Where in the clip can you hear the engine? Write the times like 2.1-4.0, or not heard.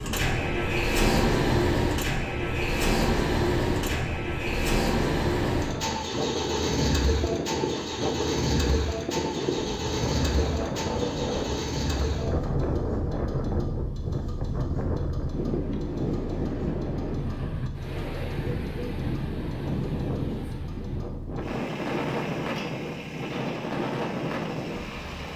0.0-25.3.